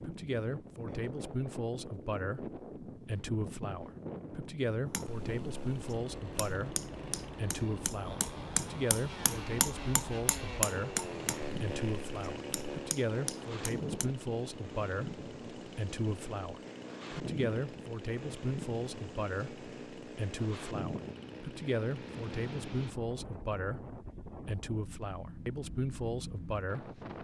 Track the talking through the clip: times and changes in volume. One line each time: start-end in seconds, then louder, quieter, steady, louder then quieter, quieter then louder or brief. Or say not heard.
0.0-26.9 steady.